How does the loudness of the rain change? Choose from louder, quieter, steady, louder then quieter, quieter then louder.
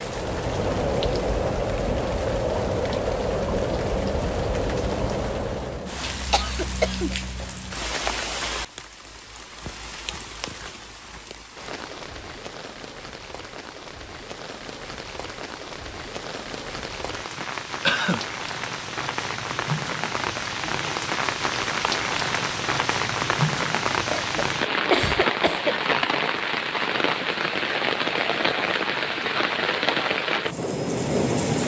quieter then louder.